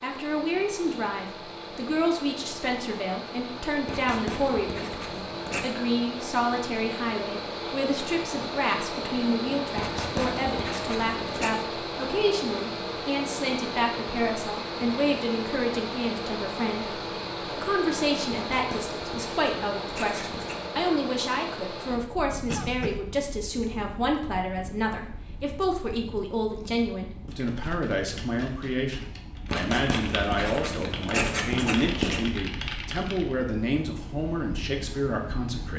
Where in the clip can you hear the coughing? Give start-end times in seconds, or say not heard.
22.4-23.1.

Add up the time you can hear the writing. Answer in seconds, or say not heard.
9 s.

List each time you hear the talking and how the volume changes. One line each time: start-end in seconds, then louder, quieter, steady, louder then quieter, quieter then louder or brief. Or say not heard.
0.0-35.7 steady.